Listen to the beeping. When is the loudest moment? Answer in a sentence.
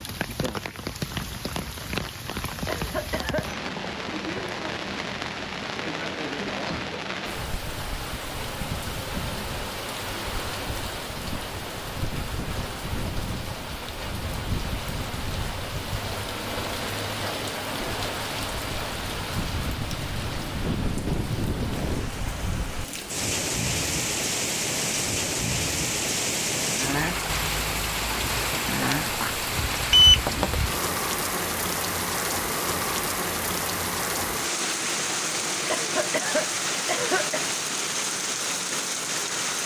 The volume of the beeping peaks at 30 seconds.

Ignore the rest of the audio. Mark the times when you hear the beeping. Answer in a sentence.
You can hear the beeping from 28.8 to 30.6 s.